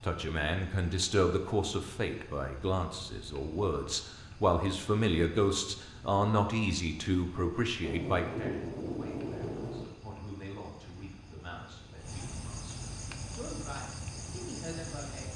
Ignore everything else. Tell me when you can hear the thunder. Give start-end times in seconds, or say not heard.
7.8-9.8.